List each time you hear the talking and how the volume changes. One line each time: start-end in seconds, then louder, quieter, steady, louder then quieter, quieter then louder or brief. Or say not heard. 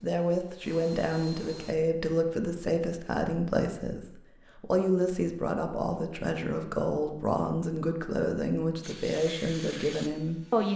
0.0-10.7 steady.